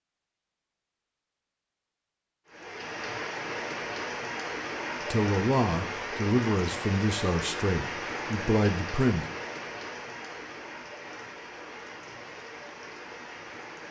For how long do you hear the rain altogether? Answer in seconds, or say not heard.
11 s.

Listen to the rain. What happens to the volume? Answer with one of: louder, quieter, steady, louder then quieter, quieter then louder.
quieter.